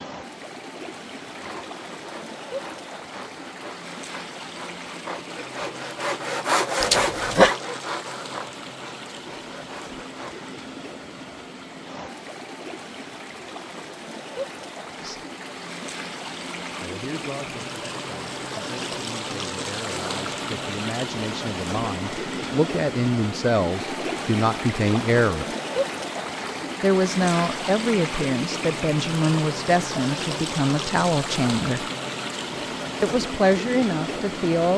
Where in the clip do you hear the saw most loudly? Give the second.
7 s.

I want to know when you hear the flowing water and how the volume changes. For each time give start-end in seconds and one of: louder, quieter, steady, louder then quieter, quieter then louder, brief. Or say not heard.
0.0-34.7 louder.